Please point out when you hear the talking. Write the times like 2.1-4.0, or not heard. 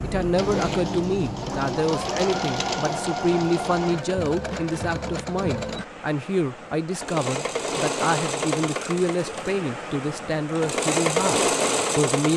0.0-12.3.